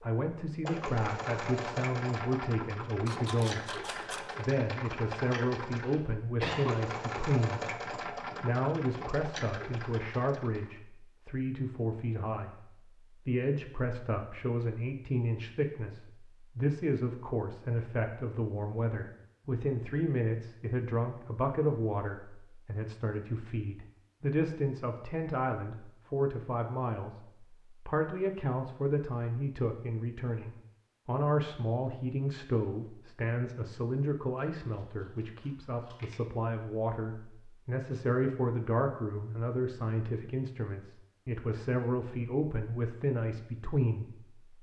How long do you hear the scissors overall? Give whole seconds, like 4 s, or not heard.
3 s.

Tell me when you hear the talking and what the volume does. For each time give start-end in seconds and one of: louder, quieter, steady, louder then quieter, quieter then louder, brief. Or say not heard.
0.0-44.5 steady.